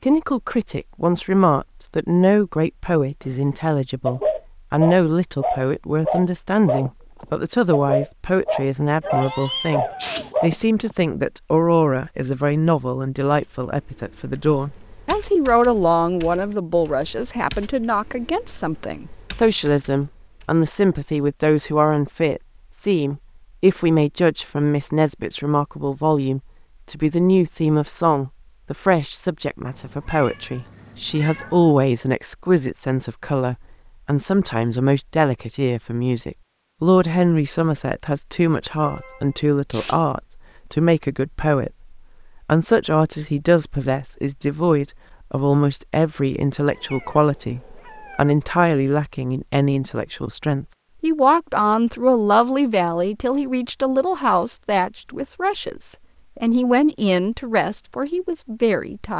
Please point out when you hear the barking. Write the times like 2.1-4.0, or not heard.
3.2-10.9.